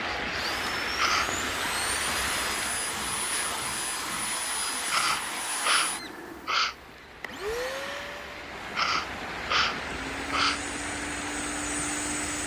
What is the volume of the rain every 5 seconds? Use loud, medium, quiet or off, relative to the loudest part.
loud, medium, loud.